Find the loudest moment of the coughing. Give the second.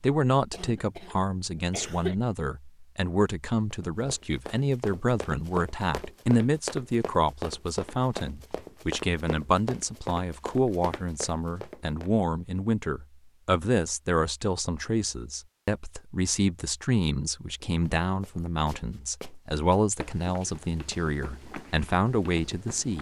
2 s.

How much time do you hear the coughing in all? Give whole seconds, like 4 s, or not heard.
2 s.